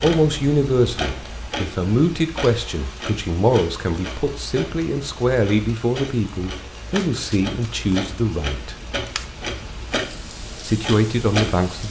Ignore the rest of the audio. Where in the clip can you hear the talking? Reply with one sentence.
The talking can be heard from 0.0 to 8.8 s and from 10.6 to 11.8 s.